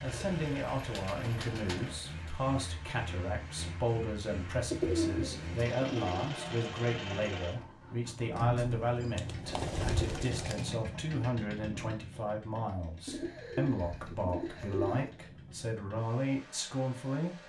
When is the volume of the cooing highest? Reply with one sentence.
The loudest moment of the cooing is at 5 seconds.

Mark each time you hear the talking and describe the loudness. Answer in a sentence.
The talking can be heard from 0.0 to 17.4 s, at a steady volume.